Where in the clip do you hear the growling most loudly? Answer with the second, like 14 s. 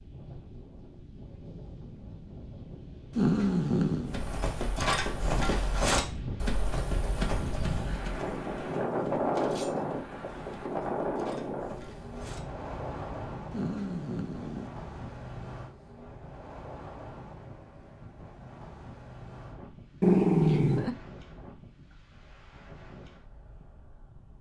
20 s.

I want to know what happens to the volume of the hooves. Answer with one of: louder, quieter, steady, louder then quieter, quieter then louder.
quieter.